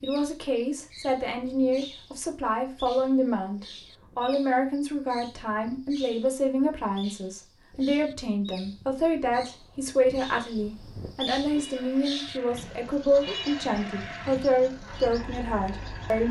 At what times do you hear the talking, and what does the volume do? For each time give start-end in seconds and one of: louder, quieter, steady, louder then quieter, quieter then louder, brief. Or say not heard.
0.0-16.2 steady.